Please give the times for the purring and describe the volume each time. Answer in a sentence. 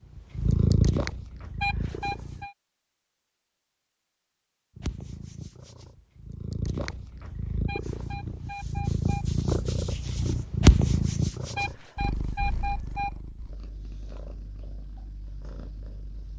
The purring can be heard briefly from 0.1 to 2.5 s; and from 4.8 to 16.3 s, getting louder then quieter.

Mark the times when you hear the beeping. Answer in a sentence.
You can hear the beeping from 1.6 to 2.5 s, from 7.7 to 9.2 s and from 11.6 to 13.1 s.